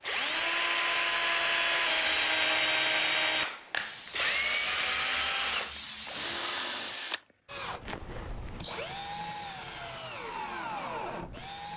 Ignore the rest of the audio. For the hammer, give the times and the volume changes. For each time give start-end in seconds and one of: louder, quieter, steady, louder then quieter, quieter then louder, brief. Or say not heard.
not heard.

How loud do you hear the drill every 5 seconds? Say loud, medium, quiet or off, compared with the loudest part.
loud, medium, medium.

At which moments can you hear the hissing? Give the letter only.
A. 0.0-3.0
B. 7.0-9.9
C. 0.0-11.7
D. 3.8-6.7
D.